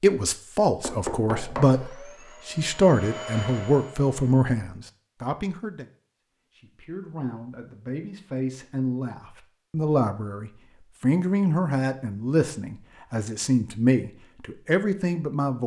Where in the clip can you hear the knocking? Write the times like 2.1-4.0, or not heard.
0.8-1.8.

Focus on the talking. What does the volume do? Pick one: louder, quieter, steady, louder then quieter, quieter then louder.
quieter then louder.